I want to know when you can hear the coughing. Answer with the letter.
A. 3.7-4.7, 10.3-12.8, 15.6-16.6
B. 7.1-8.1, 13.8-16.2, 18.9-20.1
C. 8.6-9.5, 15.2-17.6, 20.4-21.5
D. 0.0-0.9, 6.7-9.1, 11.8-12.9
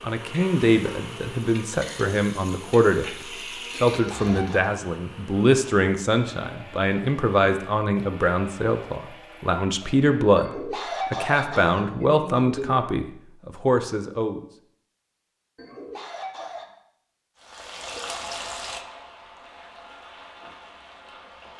A.